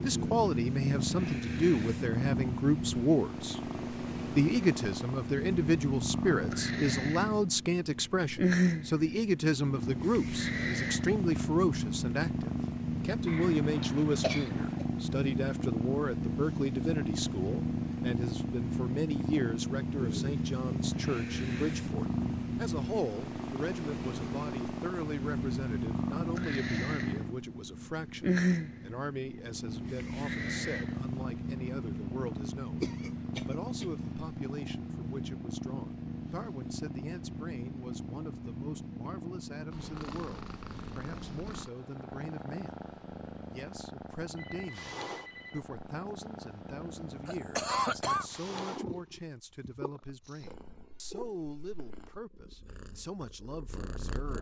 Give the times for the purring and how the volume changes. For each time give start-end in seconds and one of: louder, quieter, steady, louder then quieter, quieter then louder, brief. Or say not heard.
0.0-54.3 quieter.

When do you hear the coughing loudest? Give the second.
48 s.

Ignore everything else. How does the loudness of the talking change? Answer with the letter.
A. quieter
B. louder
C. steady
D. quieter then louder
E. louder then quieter
A.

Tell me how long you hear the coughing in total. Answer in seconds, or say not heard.
4 s.